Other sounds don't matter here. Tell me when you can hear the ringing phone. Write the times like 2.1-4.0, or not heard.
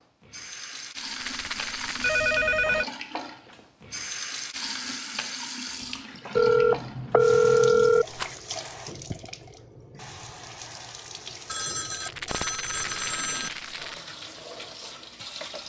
2.0-2.9, 6.3-8.1, 11.5-13.5.